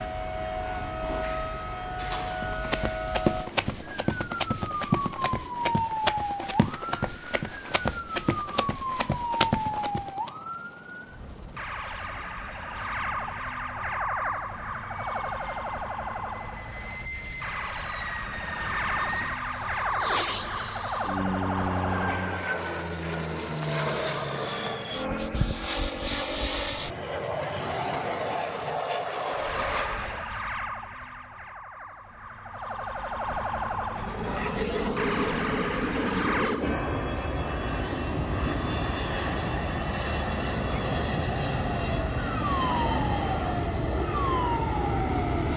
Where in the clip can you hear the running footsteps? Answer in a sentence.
You can hear the running footsteps from 2.3 to 10.3 s.